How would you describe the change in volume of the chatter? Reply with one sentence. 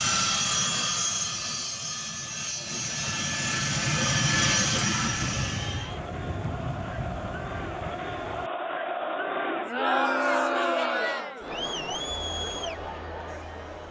The volume of the chatter goes up, then down.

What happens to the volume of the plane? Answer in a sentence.
The volume of the plane goes down, then up.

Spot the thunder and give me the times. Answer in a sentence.
You can hear the thunder from 5.0 to 8.5 s.